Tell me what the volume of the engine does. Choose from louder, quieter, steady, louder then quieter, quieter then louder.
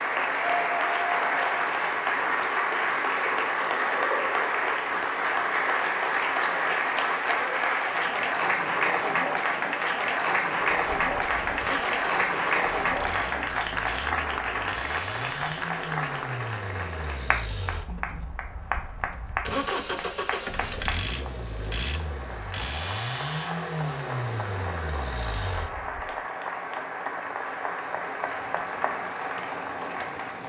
louder.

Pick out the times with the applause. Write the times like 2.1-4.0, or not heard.
0.0-30.4.